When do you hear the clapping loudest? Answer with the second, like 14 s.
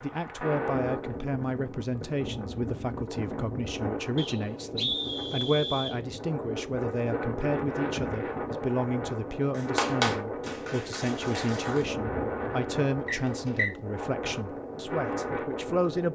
10 s.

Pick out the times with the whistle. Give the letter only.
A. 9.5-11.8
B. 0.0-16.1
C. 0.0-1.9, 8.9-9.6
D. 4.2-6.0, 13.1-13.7
D.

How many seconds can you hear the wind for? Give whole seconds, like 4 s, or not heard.
16 s.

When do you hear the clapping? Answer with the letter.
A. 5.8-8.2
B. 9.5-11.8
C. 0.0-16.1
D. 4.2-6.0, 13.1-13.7
B.